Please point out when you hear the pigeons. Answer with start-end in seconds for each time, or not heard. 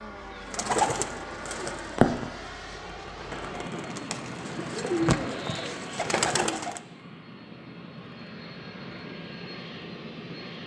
0.5-6.8.